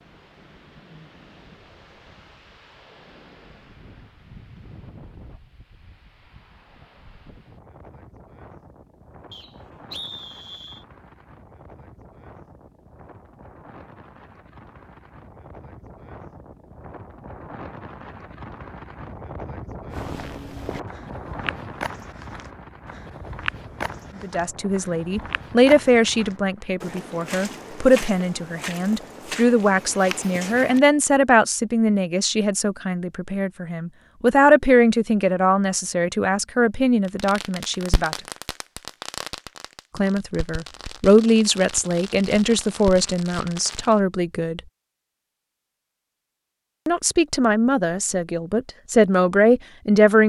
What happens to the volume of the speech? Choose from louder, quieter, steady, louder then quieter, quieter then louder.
steady.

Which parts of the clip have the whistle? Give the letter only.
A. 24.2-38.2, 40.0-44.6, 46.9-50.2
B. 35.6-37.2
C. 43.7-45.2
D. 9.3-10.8
D.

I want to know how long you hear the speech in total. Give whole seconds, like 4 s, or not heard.
22 s.